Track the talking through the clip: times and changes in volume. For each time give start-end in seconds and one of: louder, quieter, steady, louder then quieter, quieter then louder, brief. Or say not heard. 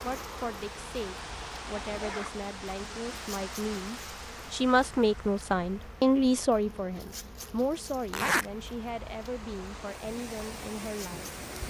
0.0-11.6 louder then quieter.